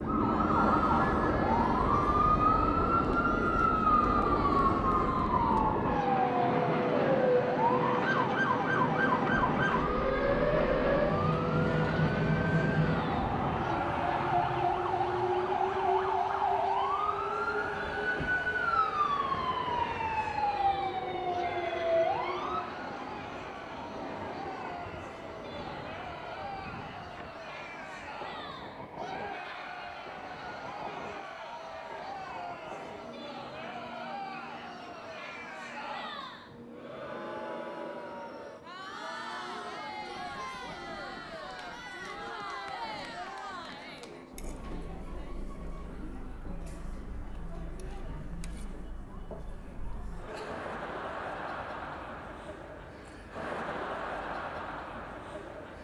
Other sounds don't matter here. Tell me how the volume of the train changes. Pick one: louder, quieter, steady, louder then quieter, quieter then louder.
quieter.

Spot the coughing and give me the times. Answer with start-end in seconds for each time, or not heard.
not heard.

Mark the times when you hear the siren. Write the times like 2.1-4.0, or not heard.
0.0-22.6.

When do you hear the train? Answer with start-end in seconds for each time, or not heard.
0.0-55.7.